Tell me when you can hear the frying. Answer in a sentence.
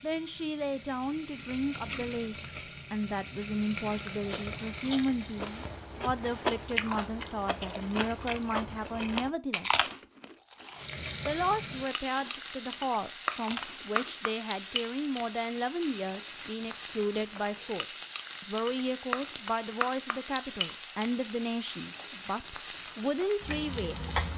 The frying can be heard from 0.0 to 5.8 s and from 10.8 to 24.3 s.